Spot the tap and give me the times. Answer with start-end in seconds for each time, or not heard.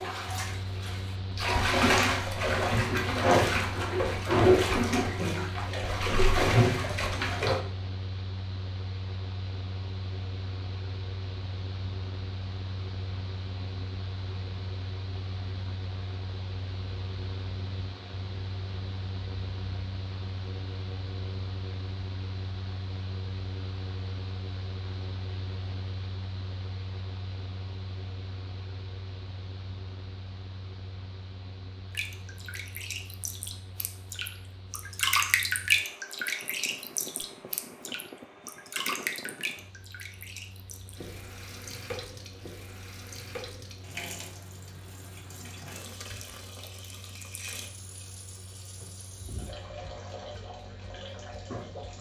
0.0-7.6, 31.9-51.9.